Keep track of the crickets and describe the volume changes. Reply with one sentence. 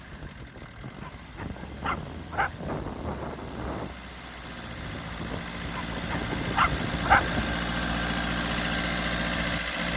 The loudness of the crickets goes up.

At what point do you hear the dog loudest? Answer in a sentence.
The volume of the dog peaks at 7 seconds.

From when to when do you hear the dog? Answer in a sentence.
You can hear the dog from 1.0 to 2.7 s and from 5.7 to 7.3 s.